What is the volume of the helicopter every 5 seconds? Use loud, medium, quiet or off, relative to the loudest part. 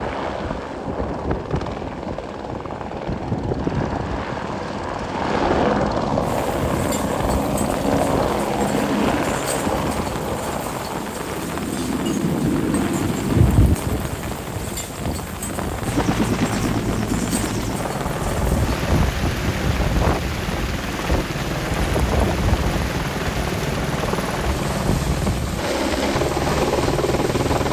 medium, loud, loud, loud, loud, loud.